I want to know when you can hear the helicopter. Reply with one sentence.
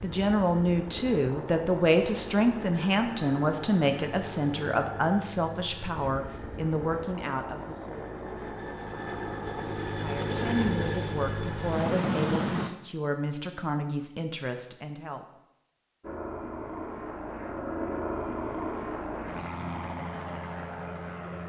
You can hear the helicopter from 0.0 to 12.7 s and from 16.0 to 21.4 s.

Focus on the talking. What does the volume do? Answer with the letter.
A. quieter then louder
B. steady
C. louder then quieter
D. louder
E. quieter
E.